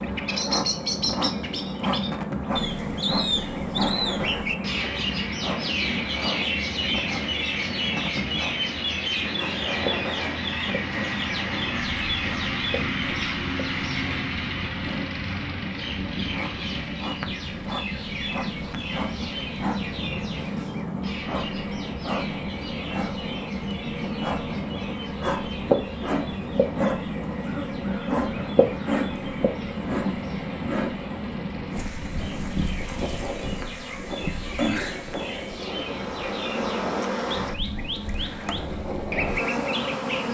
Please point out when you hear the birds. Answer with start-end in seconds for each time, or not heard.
0.0-40.2.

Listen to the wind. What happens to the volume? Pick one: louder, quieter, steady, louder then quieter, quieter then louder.
steady.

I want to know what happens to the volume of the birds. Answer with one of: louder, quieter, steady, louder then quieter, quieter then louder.
quieter then louder.